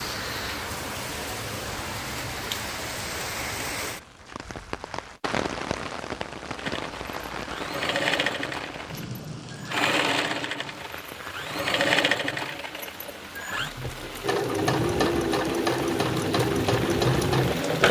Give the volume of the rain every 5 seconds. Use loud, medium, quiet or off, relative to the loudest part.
loud, loud, medium, loud.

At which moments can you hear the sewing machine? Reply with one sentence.
You can hear the sewing machine from 6.5 to 17.8 s.